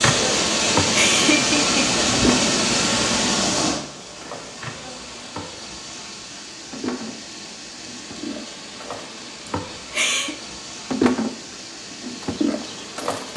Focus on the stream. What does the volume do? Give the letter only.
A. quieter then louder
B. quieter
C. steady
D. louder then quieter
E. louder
B.